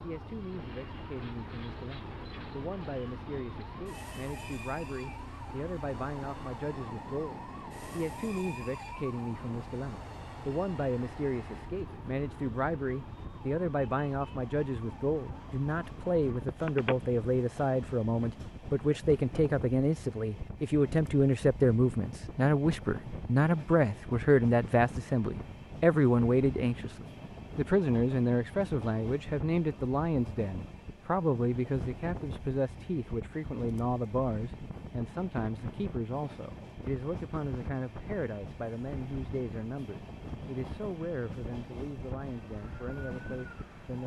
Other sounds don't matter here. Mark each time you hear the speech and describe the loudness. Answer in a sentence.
You can hear the speech from 0.0 to 44.0 s, getting louder then quieter.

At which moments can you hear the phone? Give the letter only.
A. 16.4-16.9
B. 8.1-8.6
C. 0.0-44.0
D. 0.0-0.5
A.